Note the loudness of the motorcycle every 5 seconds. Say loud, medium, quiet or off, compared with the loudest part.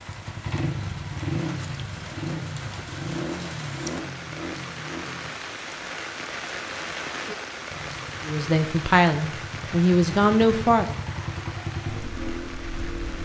loud, medium, loud.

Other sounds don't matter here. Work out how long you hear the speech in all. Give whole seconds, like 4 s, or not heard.
3 s.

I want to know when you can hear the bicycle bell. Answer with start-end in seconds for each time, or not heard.
not heard.